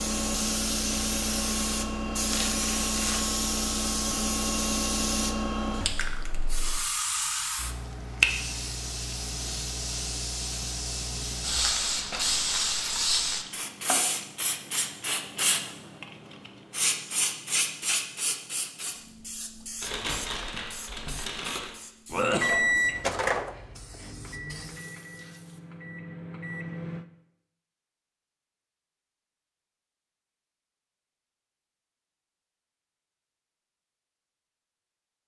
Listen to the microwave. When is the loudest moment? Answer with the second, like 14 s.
23 s.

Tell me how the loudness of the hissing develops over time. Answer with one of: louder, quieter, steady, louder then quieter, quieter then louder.
quieter.